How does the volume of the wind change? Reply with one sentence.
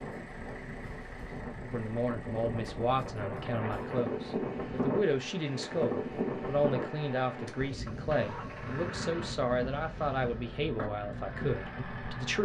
The loudness of the wind goes up, then down.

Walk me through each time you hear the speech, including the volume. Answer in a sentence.
You can hear the speech from 1.6 to 12.4 s, at a steady volume.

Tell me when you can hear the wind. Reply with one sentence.
You can hear the wind from 0.0 to 10.5 s.